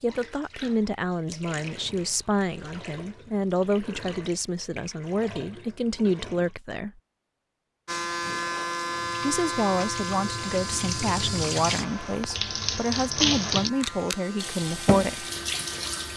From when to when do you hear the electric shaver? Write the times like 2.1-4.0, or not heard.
7.8-16.1.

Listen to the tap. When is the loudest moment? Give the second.
13 s.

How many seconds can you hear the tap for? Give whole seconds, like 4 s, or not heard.
14 s.